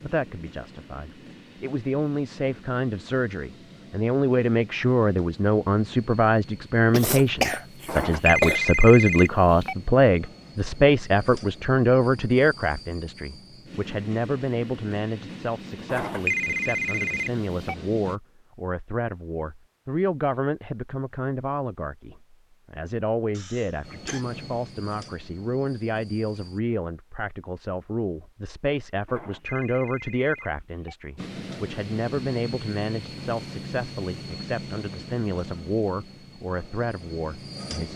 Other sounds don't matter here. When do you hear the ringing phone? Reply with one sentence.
You can hear the ringing phone from 7.8 to 9.8 s, from 15.8 to 17.8 s and from 29.1 to 30.9 s.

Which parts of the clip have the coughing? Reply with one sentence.
The coughing can be heard from 6.9 to 8.6 s and from 23.3 to 24.2 s.